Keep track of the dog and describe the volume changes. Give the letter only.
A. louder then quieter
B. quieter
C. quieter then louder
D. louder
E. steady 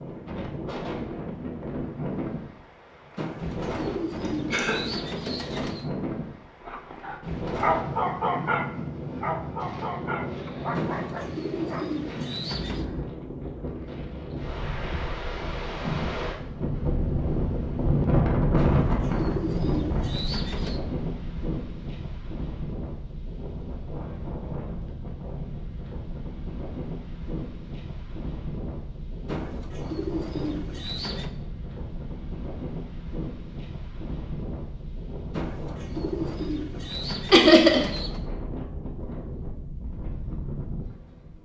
B.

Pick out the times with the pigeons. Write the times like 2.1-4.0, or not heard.
3.1-5.8, 10.8-12.8, 18.6-20.8, 29.2-31.3, 35.3-38.2.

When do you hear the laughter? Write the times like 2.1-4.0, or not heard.
4.2-4.8, 37.3-37.8.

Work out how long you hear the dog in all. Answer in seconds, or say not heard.
5 s.